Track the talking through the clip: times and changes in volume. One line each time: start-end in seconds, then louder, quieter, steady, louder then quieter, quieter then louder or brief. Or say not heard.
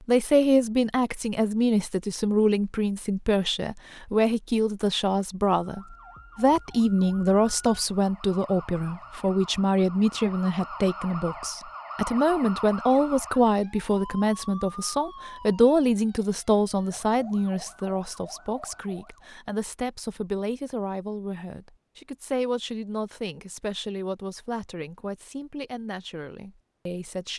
0.1-27.3 quieter.